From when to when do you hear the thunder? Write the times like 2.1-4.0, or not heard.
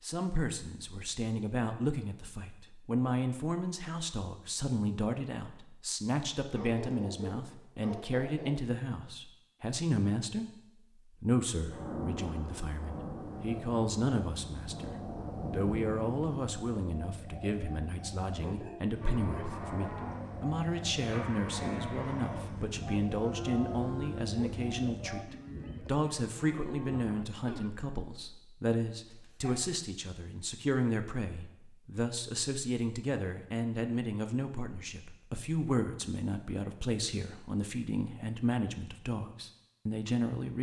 11.7-16.2.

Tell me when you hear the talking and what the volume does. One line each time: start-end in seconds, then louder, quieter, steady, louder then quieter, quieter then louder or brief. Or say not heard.
0.0-40.5 steady.